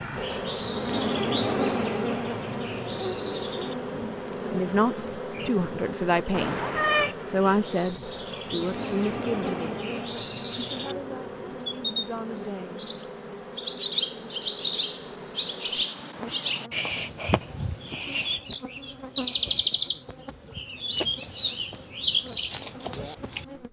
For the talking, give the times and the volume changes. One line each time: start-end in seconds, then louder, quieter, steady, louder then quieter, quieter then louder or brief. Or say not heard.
4.5-9.8 louder then quieter
10.6-12.8 brief.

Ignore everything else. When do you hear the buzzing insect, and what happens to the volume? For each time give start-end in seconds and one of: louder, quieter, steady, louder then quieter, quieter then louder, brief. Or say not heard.
0.0-23.6 quieter.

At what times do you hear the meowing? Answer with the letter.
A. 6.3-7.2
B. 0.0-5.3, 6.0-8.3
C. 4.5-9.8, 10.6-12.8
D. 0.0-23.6
A.